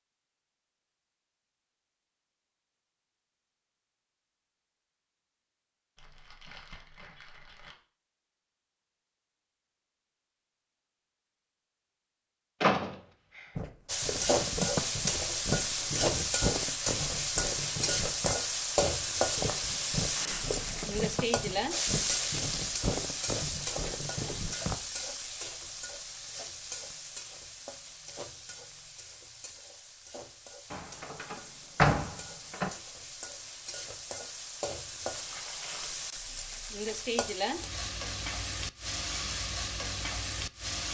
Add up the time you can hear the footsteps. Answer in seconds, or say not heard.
11 s.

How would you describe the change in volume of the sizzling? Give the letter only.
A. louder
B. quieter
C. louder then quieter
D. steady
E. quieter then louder
E.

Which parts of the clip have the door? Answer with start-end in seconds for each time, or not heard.
12.6-13.4, 30.7-32.7.